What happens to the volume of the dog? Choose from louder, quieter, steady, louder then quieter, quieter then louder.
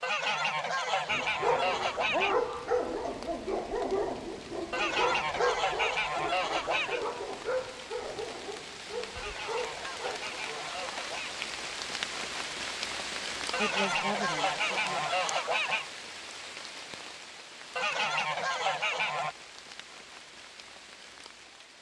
quieter.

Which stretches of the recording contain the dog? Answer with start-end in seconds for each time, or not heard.
1.1-10.9.